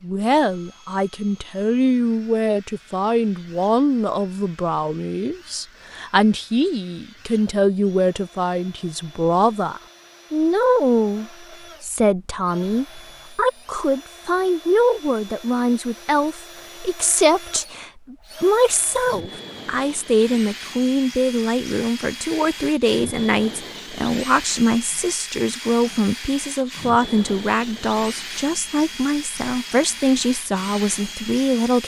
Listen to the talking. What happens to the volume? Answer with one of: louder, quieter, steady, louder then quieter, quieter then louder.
steady.